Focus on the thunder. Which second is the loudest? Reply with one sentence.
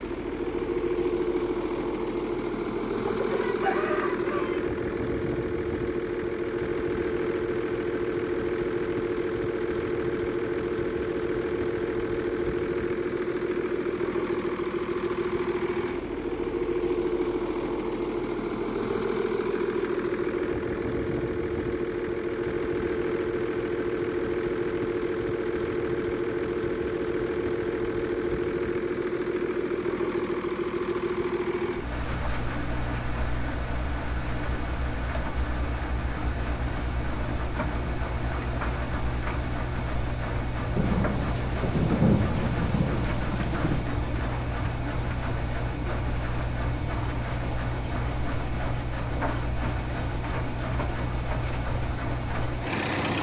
The loudest moment of the thunder is at 42 seconds.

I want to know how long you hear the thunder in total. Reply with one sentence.
You can hear the thunder for 3 seconds altogether.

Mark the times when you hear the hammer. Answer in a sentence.
The hammer can't be heard in this clip.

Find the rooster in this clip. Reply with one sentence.
You can hear the rooster from 3.0 to 4.6 s.